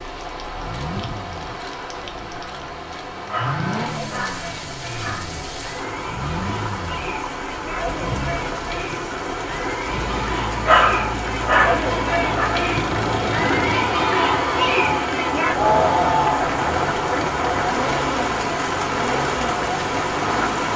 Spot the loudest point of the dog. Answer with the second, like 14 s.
11 s.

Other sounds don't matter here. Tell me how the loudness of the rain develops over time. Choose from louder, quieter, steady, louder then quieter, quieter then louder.
louder.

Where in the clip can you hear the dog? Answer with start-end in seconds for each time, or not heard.
3.3-5.3, 10.7-12.6.